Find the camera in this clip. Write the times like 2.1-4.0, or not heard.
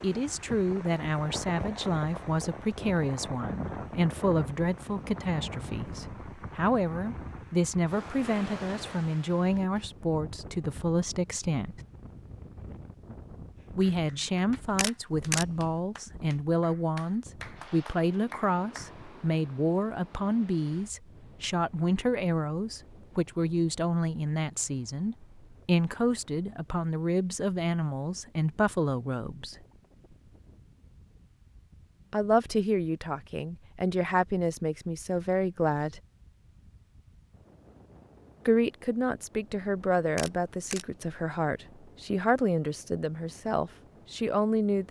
14.7-15.8, 40.0-41.0.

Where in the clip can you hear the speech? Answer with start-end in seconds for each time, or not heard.
0.0-11.8, 13.7-29.6, 32.1-36.0, 38.5-44.8.